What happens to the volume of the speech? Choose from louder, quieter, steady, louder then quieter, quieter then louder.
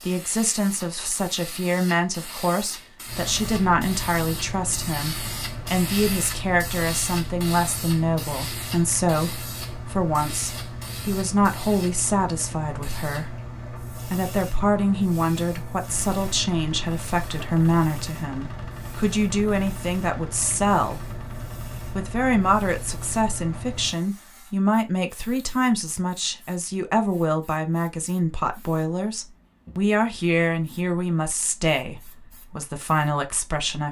steady.